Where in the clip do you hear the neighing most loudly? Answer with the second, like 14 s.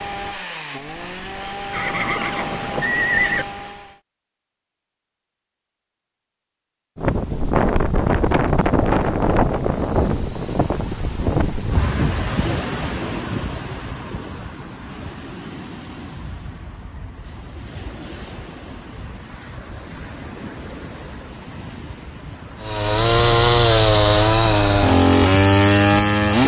3 s.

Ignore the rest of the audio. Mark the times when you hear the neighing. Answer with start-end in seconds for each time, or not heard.
1.7-3.5.